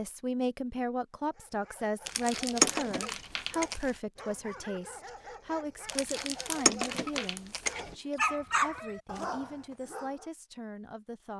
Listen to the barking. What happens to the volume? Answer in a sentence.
The volume of the barking goes up.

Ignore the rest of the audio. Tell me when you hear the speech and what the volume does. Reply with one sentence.
The speech can be heard from 0.0 to 11.3 s, getting quieter.